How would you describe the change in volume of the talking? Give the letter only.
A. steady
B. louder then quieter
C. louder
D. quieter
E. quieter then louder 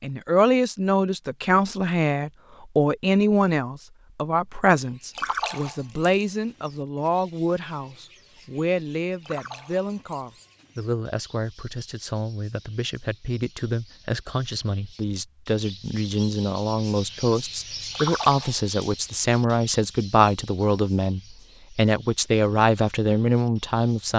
E.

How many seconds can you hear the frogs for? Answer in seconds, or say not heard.
not heard.